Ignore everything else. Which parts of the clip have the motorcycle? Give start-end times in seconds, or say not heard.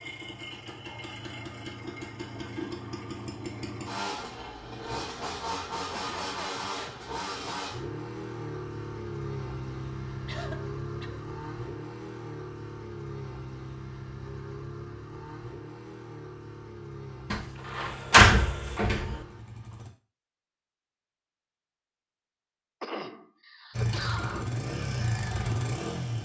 0.0-19.9, 23.7-26.2.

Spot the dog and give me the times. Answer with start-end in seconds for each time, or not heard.
not heard.